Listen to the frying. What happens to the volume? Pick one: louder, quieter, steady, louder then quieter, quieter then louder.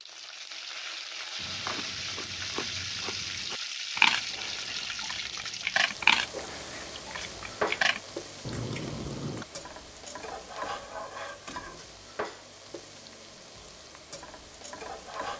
quieter.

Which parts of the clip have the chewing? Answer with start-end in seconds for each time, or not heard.
1.4-9.4.